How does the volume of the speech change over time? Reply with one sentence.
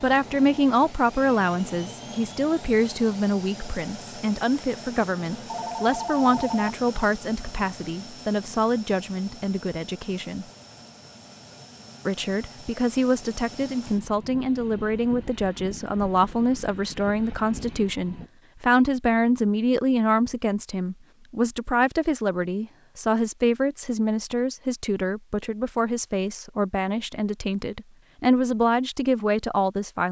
The volume of the speech stays about the same.